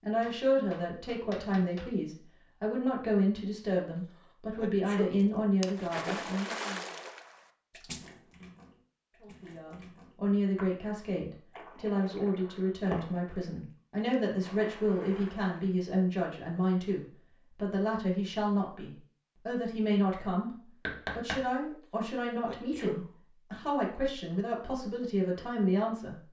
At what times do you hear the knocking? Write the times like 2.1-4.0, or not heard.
0.2-1.9, 20.9-21.4.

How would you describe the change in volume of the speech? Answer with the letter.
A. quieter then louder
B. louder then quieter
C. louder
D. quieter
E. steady
E.